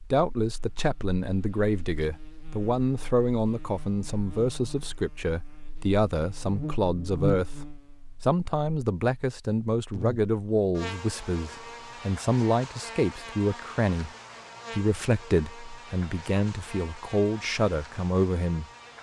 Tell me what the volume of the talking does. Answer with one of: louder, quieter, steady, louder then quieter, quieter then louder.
steady.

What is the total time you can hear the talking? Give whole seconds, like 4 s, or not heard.
18 s.